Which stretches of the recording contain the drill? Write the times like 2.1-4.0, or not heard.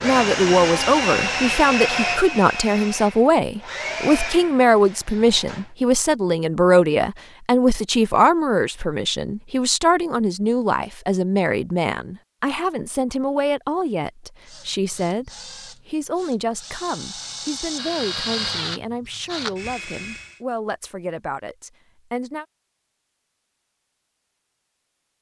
0.0-5.7, 14.4-20.4.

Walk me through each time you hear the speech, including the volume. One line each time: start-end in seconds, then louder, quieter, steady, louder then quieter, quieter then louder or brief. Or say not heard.
0.0-22.4 quieter.